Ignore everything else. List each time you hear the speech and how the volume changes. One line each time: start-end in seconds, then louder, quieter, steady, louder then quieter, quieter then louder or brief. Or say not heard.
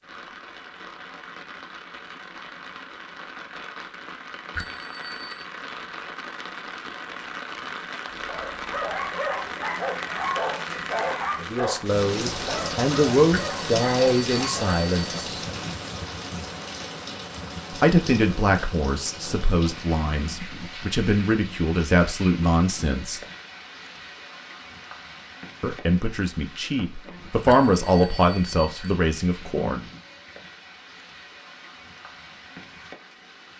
11.4-15.4 louder then quieter
17.8-23.2 quieter then louder
25.6-29.9 louder then quieter.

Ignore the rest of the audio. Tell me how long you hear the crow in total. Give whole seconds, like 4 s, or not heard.
not heard.